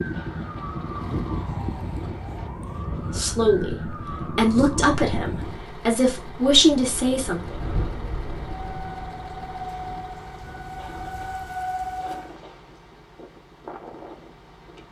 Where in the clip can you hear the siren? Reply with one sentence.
The siren can be heard from 0.0 to 5.7 s and from 8.6 to 12.3 s.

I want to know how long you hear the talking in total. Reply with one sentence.
You can hear the talking for 4 seconds altogether.